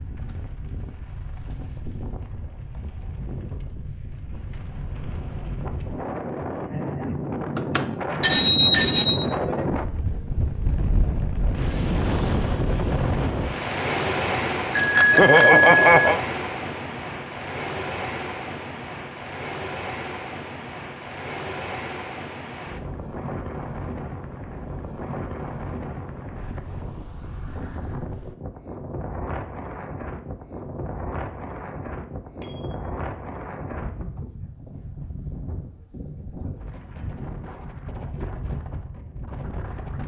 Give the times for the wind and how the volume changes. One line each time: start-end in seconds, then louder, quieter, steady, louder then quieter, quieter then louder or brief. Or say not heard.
0.0-40.0 louder then quieter.